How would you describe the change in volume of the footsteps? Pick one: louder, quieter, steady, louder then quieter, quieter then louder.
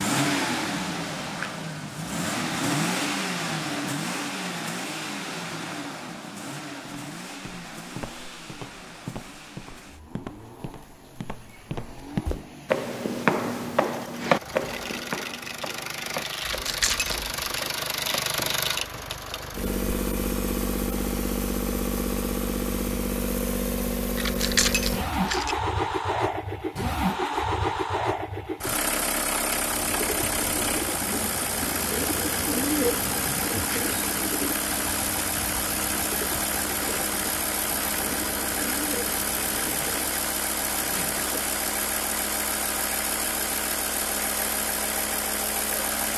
louder then quieter.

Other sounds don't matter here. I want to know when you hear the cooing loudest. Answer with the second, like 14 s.
33 s.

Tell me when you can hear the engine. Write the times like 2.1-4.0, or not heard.
0.0-46.1.